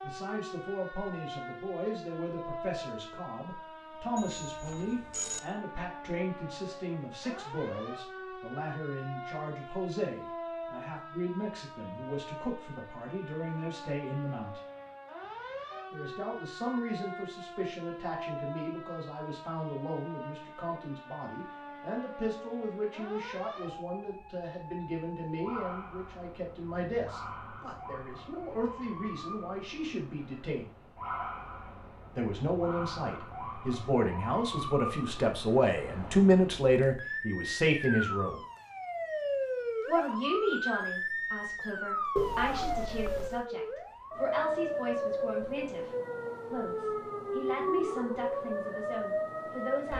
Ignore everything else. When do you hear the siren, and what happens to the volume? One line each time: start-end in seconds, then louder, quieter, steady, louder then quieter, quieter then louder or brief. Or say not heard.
0.0-49.9 louder.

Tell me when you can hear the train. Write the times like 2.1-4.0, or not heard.
not heard.